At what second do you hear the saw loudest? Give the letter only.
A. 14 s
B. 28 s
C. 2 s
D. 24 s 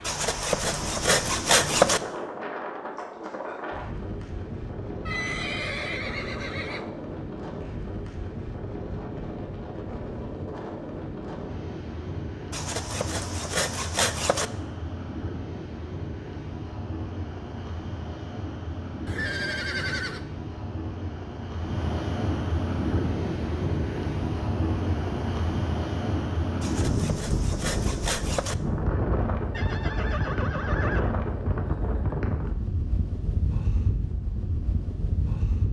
C.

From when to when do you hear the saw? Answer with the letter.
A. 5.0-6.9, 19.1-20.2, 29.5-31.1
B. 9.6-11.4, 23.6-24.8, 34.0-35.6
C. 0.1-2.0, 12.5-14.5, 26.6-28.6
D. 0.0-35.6
C.